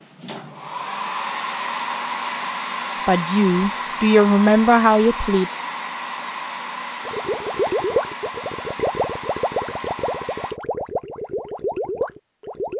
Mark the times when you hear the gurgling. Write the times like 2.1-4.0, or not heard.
7.0-12.7.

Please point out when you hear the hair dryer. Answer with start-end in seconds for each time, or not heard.
0.0-10.6.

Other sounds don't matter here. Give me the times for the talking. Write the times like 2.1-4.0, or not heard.
3.0-5.5.